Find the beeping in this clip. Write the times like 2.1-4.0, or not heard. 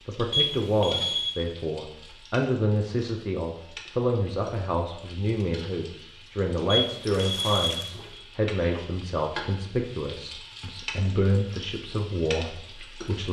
0.3-1.4, 6.7-8.2.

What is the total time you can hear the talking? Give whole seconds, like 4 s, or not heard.
13 s.